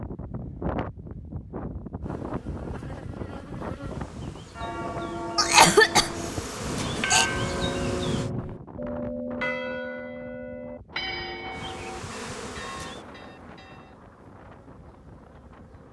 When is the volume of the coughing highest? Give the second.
6 s.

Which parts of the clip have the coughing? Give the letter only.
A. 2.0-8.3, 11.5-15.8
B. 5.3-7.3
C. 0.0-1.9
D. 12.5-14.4
B.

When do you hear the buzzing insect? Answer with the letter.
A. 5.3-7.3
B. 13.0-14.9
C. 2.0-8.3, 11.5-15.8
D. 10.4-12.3
C.